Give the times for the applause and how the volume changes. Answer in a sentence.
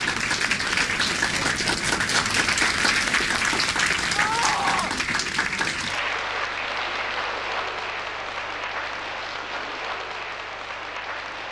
The applause can be heard from 0.0 to 11.4 s, getting quieter.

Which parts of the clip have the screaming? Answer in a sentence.
The screaming can be heard from 4.1 to 5.0 s.